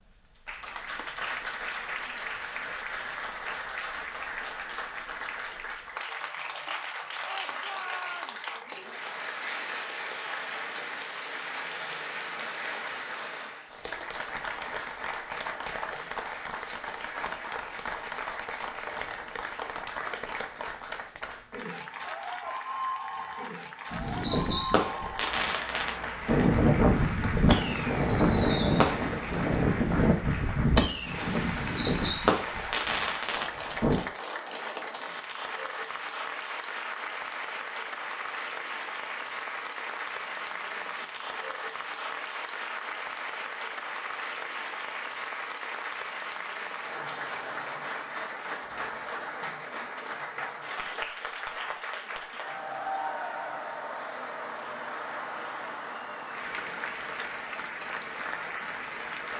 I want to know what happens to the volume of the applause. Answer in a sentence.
The volume of the applause stays about the same.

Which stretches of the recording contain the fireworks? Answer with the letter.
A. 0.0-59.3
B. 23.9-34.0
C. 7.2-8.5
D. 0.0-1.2
B.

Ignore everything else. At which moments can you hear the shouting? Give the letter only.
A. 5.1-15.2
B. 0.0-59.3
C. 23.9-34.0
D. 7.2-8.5
D.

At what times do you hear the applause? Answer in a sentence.
You can hear the applause from 0.0 to 59.3 s.